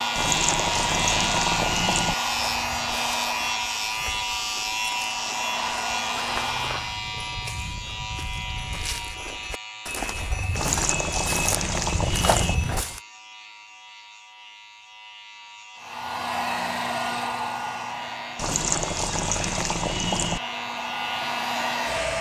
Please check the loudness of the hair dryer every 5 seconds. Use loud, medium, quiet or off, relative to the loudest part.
loud, loud, off, loud, loud.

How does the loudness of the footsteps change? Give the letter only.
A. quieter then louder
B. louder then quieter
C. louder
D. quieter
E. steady
C.